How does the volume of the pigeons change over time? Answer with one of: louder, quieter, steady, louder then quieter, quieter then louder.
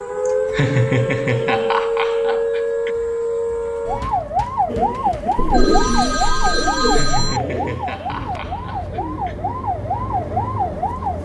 quieter.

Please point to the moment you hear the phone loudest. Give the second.
7 s.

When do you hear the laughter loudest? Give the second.
1 s.